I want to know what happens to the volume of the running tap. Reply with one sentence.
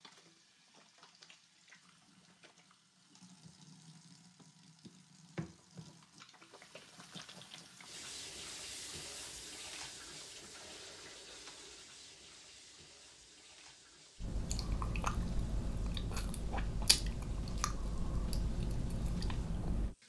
The volume of the running tap goes up, then down.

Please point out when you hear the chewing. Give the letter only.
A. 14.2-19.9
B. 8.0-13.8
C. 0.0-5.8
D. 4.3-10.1
A.